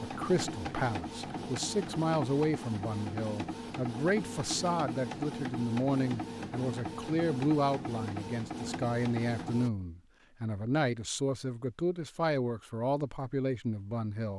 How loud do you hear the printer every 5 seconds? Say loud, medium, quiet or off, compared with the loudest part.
loud, loud, off.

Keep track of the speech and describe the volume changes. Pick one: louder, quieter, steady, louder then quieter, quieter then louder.
steady.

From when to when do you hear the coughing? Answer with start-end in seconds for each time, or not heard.
not heard.